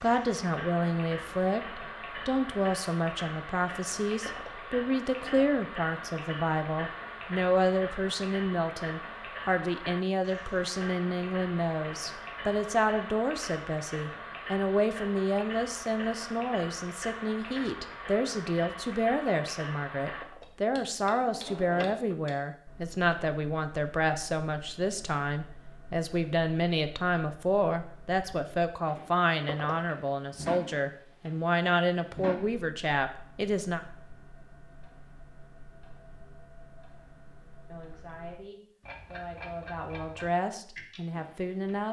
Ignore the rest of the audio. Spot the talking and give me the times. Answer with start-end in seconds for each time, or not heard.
0.0-33.8, 37.7-41.8.